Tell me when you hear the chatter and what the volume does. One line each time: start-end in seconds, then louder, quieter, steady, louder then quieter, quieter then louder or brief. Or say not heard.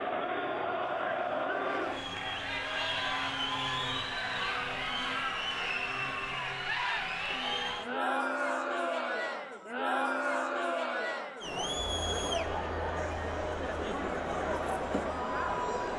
0.0-15.9 steady.